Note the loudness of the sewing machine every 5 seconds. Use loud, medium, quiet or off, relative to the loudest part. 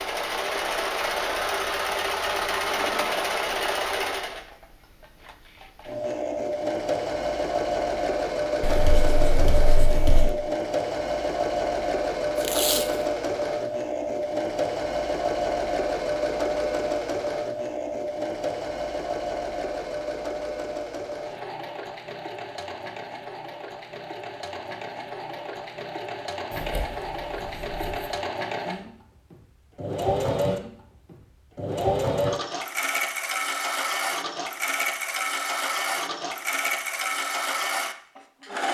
loud, loud, loud, loud, medium, medium, loud, loud.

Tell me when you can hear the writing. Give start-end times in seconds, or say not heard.
8.6-10.3, 26.5-28.1.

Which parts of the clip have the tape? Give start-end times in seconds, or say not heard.
12.3-13.1.